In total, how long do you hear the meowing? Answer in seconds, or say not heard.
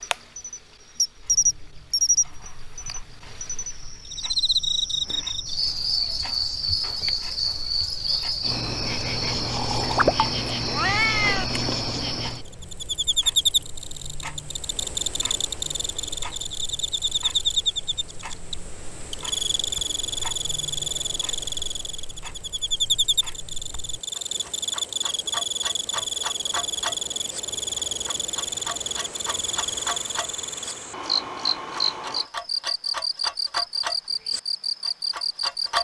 2 s.